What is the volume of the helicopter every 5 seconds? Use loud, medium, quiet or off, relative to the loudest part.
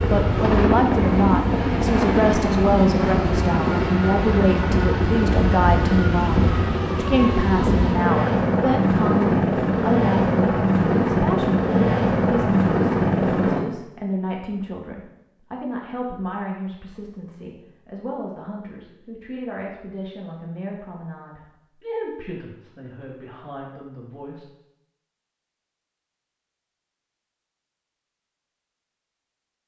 loud, loud, loud, off, off, off.